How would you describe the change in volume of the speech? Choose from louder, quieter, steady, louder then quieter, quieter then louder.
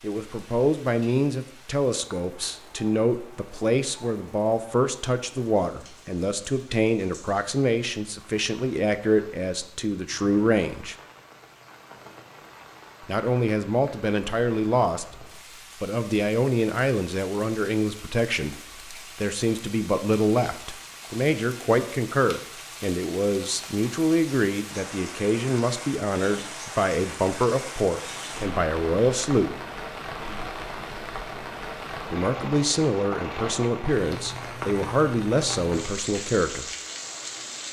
steady.